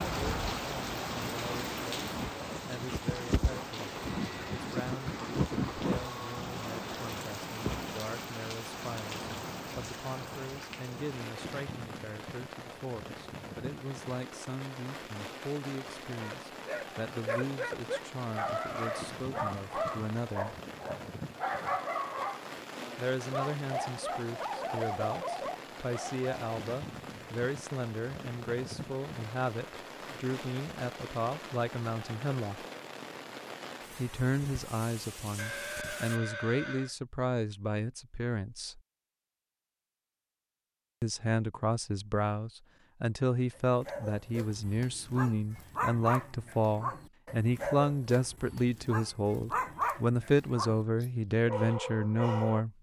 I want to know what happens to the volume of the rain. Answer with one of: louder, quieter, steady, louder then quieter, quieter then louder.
quieter.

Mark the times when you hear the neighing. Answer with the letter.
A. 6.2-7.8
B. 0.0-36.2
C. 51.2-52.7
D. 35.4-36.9
D.